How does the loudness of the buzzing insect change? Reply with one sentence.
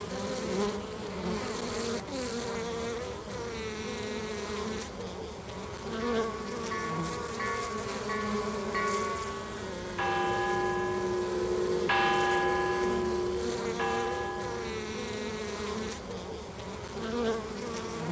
The volume of the buzzing insect stays about the same.